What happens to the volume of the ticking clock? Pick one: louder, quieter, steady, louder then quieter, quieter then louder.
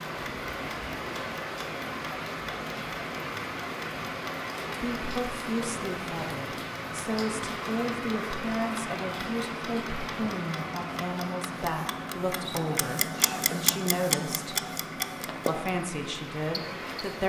louder.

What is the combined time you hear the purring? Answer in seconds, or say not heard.
not heard.